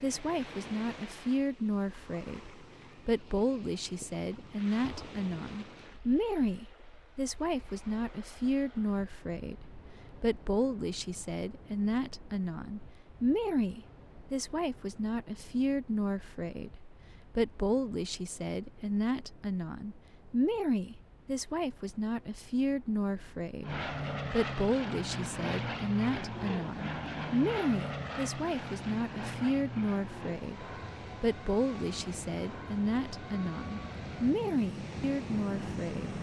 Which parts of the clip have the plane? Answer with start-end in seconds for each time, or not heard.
23.6-36.1.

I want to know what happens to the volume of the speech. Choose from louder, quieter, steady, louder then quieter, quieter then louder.
steady.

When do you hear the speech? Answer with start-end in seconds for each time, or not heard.
0.0-36.1.